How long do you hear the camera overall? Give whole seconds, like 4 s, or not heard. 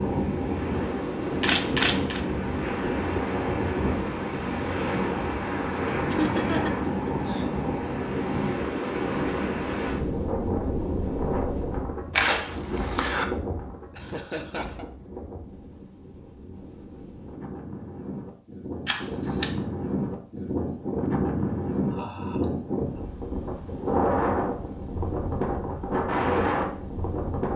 3 s.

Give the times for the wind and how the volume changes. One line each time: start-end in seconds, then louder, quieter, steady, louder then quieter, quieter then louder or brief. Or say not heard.
0.0-27.5 quieter then louder.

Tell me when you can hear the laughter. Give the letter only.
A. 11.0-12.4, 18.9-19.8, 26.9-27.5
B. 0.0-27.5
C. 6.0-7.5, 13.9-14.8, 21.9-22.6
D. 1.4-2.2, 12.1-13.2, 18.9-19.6
C.